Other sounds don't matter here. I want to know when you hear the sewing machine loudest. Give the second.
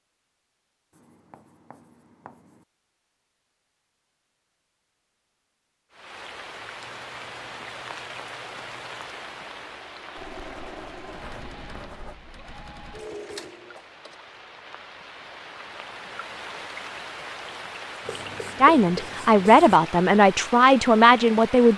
13 s.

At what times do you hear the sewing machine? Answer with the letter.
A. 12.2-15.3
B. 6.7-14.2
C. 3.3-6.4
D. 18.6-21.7
B.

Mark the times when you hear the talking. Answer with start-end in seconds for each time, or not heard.
18.6-21.7.